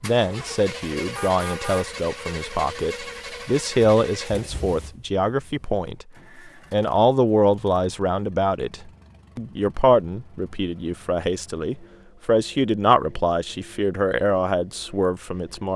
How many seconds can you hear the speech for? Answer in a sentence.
You can hear the speech for 15 seconds altogether.